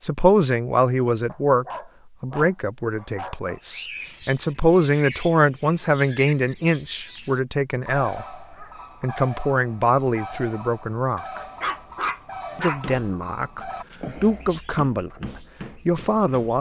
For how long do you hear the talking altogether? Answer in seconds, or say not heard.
15 s.